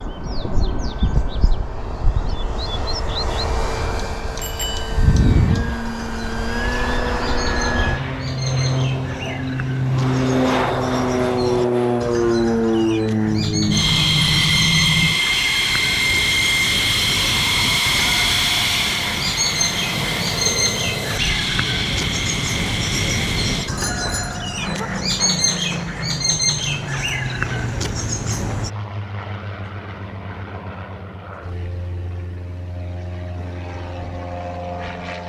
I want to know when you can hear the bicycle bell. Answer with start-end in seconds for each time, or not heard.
4.4-4.9, 13.2-15.2, 23.8-24.9.